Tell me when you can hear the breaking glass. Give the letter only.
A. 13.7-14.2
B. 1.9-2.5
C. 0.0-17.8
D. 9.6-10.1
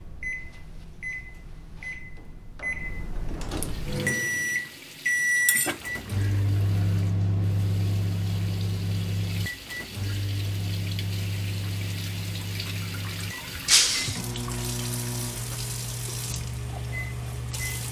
A.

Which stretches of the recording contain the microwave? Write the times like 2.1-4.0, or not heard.
0.0-17.8.